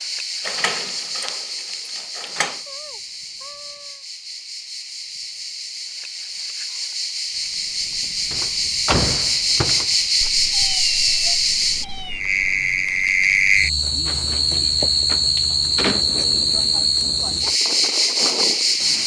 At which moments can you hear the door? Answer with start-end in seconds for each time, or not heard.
0.4-2.6, 8.3-10.3, 14.1-16.1.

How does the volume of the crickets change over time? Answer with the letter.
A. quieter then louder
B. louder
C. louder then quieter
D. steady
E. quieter
B.